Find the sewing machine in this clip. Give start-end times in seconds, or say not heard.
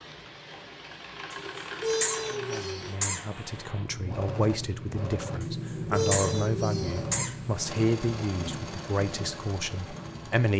0.0-10.5.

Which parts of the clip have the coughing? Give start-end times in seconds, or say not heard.
1.3-3.2, 5.4-7.3.